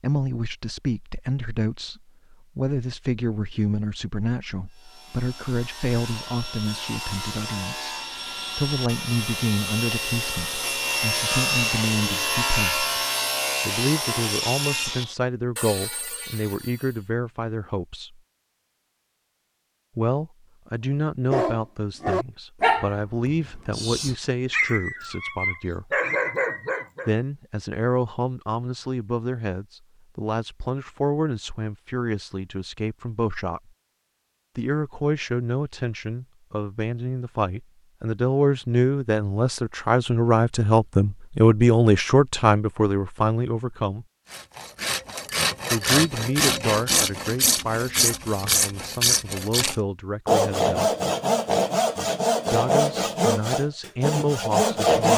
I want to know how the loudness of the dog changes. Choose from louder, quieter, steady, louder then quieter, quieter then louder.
quieter then louder.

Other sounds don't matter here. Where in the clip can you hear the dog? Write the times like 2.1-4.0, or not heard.
21.3-27.1.